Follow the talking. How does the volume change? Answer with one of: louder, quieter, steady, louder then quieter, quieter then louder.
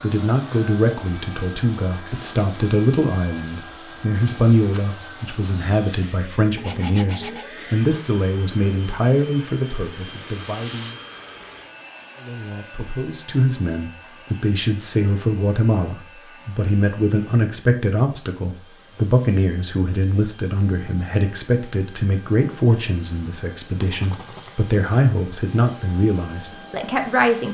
steady.